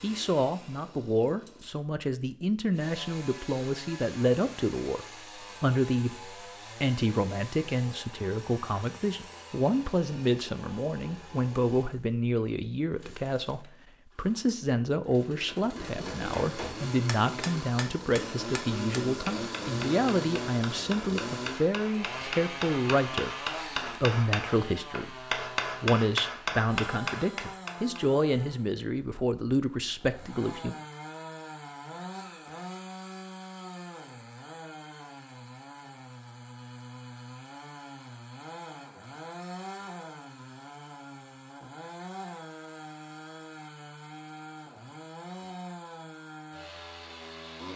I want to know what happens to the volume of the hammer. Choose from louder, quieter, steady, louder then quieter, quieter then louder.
louder.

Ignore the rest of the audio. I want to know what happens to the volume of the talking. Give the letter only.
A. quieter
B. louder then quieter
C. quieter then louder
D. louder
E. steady
E.